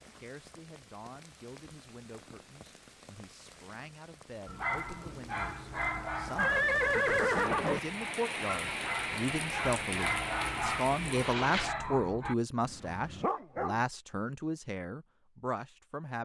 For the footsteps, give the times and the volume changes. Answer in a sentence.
You can't hear the footsteps here.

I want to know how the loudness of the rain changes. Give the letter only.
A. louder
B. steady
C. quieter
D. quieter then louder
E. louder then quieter
A.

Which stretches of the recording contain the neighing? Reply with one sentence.
You can hear the neighing from 6.3 to 7.8 s.